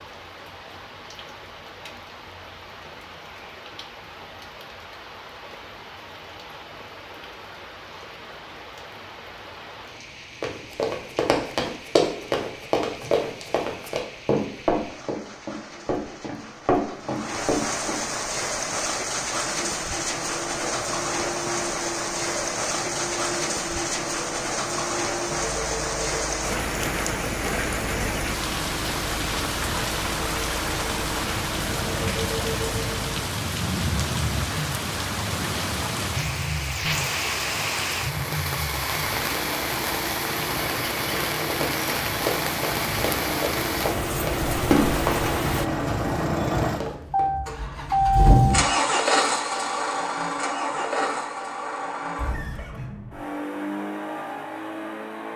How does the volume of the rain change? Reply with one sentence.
The loudness of the rain goes up.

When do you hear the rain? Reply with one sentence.
The rain can be heard from 0.0 to 45.7 s.